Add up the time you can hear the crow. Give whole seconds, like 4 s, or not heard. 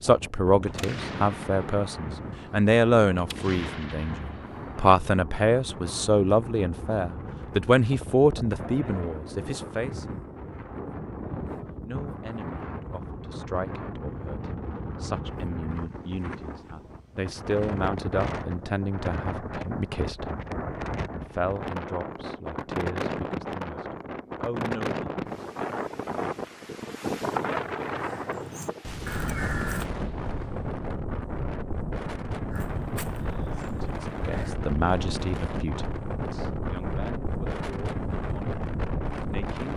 5 s.